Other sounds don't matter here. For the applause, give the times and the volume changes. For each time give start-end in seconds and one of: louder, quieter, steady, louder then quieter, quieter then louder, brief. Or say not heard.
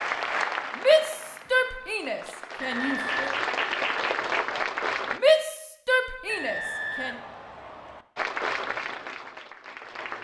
0.0-5.2 quieter then louder
8.2-10.1 brief.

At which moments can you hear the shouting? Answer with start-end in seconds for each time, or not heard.
0.8-3.4, 5.1-7.2.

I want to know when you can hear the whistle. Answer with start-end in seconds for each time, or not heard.
2.6-3.4, 6.2-8.1.